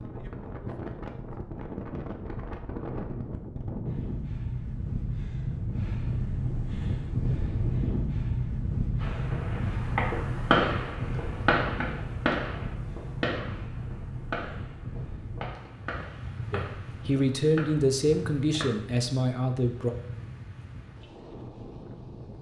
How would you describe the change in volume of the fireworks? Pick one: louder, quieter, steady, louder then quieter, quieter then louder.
quieter.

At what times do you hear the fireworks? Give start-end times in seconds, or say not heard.
9.0-18.8.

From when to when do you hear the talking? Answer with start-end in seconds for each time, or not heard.
16.5-19.9.